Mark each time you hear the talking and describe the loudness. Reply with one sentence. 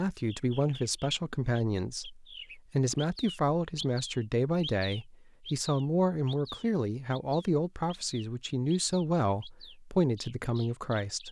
The talking can be heard from 0.0 to 11.2 s, at a steady volume.